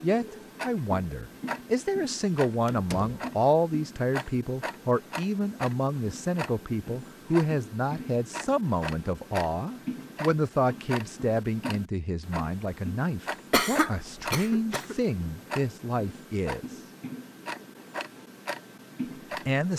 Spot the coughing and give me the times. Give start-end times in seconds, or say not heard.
13.5-14.9.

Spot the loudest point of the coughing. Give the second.
14 s.